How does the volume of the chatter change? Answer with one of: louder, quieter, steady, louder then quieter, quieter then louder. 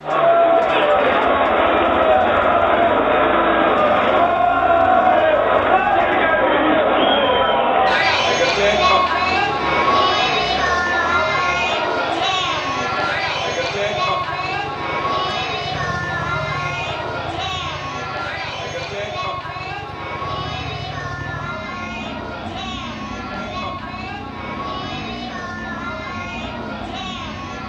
quieter.